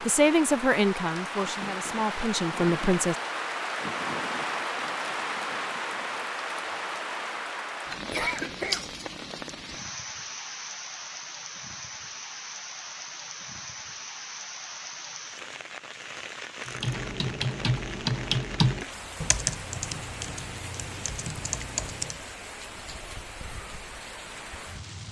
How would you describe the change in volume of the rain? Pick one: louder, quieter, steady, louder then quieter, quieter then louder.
quieter.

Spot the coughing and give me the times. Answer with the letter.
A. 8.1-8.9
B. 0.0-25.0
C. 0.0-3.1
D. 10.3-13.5
A.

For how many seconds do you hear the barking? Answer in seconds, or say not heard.
not heard.